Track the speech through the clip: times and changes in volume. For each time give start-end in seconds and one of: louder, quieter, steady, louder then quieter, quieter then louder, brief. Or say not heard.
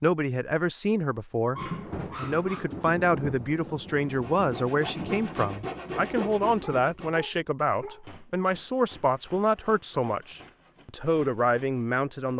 0.0-12.3 steady.